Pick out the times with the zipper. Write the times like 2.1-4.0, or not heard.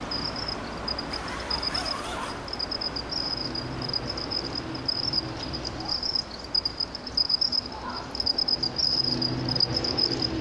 1.1-2.5.